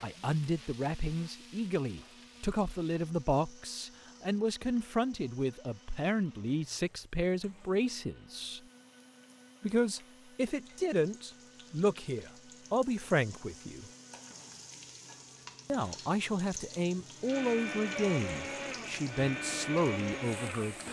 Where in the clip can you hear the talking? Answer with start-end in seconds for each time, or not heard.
0.0-8.6, 9.6-13.9, 15.7-20.8.